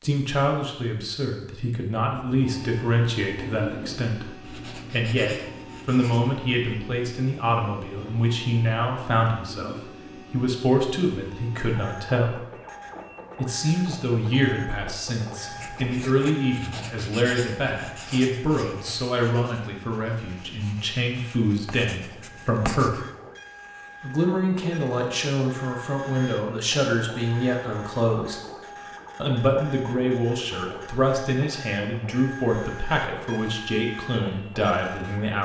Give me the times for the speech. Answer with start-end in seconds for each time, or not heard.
0.0-12.4, 13.3-23.0, 24.0-28.4, 29.1-35.4.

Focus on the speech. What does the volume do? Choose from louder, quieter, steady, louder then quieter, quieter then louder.
steady.